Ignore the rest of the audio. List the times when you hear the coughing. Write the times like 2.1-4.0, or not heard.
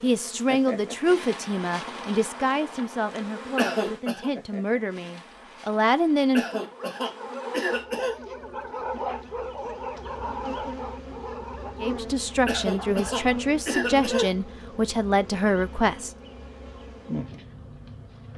3.5-4.3, 6.3-8.2, 12.4-14.4.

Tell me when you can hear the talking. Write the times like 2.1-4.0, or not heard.
0.0-6.6, 11.8-16.1.